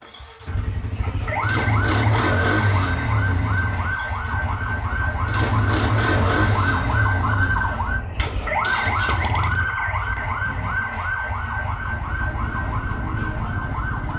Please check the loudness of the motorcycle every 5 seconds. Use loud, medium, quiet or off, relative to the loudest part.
loud, loud, medium.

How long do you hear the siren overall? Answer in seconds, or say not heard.
14 s.